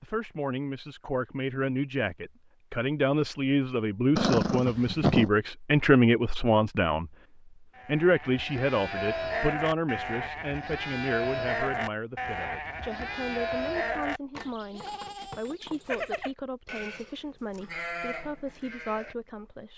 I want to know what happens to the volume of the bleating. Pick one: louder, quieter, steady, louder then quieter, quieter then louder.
quieter.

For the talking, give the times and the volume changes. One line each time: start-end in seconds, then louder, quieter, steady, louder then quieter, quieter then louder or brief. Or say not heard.
0.0-7.1 louder
7.8-19.7 quieter.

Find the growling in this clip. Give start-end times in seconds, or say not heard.
4.2-5.3.